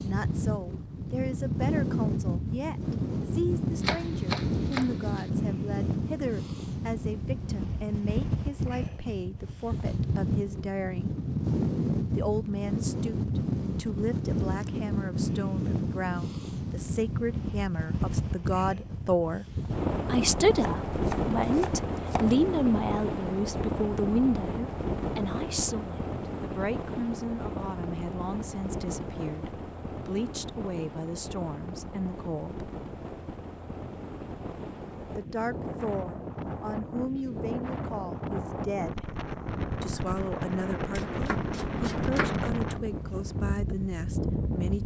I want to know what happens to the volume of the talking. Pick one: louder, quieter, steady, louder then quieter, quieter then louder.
louder then quieter.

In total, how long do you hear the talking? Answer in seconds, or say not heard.
40 s.